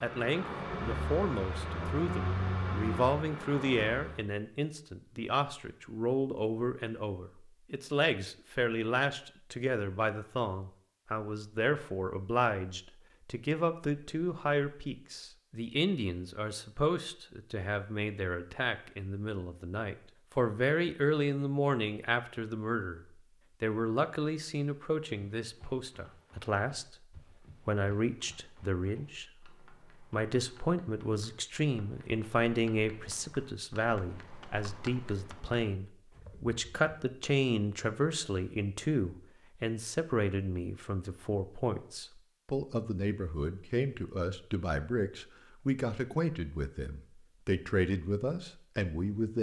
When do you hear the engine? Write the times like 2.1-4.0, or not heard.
0.0-4.2.